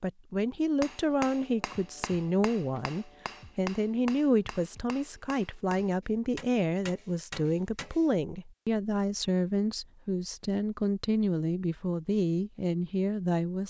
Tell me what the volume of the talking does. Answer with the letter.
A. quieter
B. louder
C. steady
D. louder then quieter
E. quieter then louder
C.